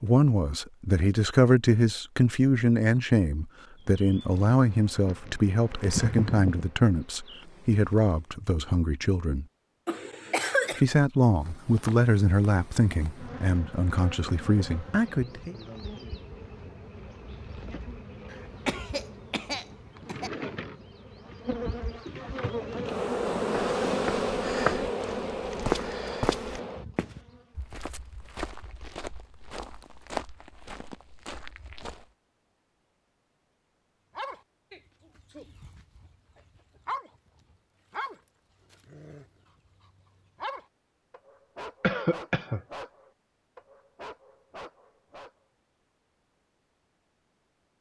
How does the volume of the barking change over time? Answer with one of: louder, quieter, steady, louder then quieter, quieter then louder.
louder then quieter.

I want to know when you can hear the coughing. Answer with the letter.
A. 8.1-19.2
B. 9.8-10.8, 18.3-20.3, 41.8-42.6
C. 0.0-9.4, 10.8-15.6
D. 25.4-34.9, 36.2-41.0
B.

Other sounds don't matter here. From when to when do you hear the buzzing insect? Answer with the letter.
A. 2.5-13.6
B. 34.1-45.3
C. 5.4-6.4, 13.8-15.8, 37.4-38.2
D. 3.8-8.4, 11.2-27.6
D.